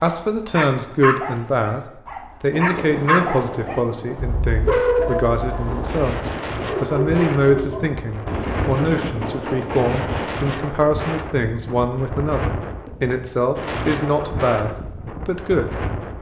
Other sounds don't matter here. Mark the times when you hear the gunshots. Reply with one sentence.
You can hear the gunshots from 8.2 to 10.3 s.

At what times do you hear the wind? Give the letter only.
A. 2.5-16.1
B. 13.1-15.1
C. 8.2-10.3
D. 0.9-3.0
A.